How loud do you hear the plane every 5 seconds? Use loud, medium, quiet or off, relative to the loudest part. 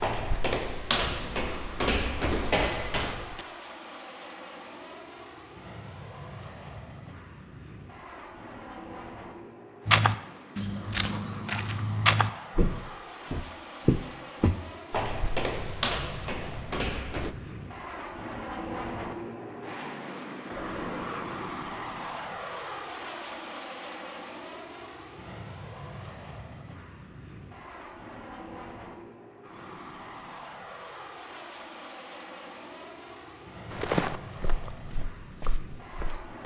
medium, medium, medium, loud, loud, medium, medium, medium.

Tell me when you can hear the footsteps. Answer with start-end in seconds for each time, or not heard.
0.0-3.5, 9.8-17.3, 33.7-36.4.